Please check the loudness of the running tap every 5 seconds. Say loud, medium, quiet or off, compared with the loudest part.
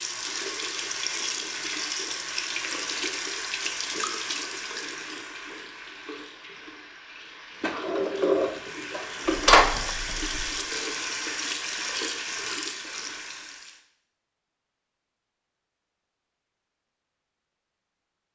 loud, medium, loud, off.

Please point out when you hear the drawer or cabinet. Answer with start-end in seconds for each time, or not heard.
7.6-9.9.